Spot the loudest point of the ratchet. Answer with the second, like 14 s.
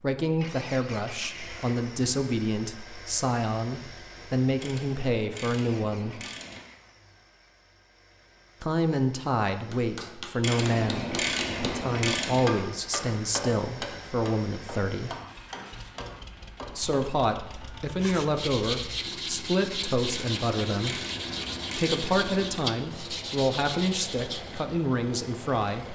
11 s.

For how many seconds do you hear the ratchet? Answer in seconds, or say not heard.
6 s.